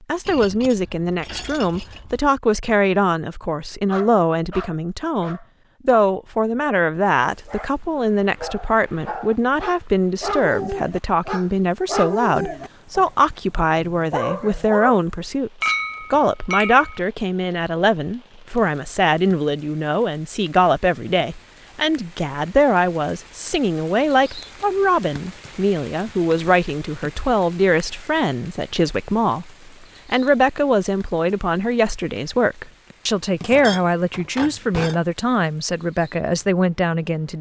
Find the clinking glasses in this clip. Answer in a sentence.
The clinking glasses can be heard from 0.2 to 2.2 s, from 15.6 to 17.0 s and from 33.4 to 35.0 s.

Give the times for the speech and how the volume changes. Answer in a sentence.
The speech can be heard from 0.1 to 37.3 s, at a steady volume.